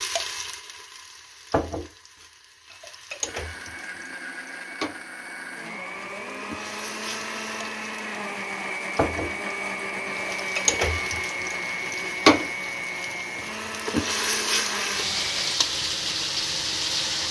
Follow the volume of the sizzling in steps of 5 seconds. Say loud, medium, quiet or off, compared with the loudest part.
medium, medium, loud, loud.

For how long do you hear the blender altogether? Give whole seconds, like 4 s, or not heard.
12 s.